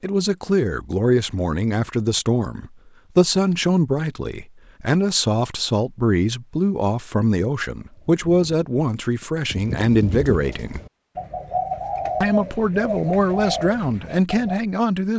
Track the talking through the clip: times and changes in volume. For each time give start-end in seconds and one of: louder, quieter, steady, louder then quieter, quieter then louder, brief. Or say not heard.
0.0-10.8 steady
12.2-15.1 brief.